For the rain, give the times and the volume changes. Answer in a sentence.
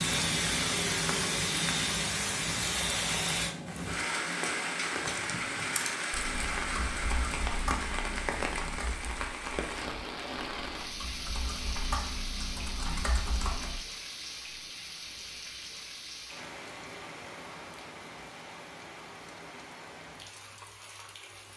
The rain can be heard from 0.0 to 21.5 s, getting quieter.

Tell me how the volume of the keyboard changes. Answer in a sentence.
The loudness of the keyboard goes down, then up.